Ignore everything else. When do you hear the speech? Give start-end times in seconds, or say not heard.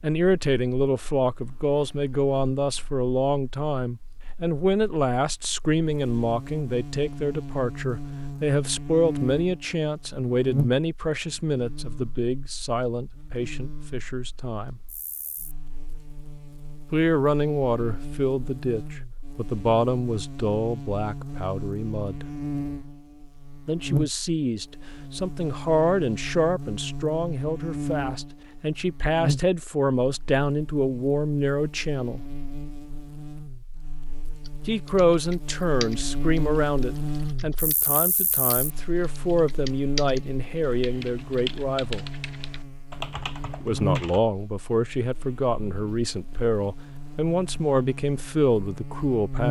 0.0-14.8, 16.9-22.2, 23.6-32.2, 34.6-42.0, 43.6-49.4.